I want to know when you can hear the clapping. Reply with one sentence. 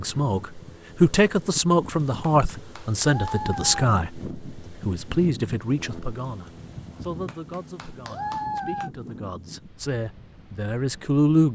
You can hear the clapping from 2.2 to 3.9 s and from 7.2 to 8.9 s.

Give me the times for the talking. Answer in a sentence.
You can hear the talking from 0.0 to 11.5 s.